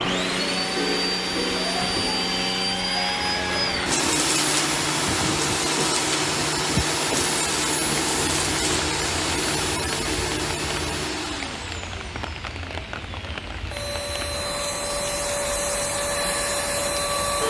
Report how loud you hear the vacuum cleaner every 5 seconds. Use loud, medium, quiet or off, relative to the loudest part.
loud, loud, medium, loud.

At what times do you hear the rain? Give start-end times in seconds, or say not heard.
3.2-17.4.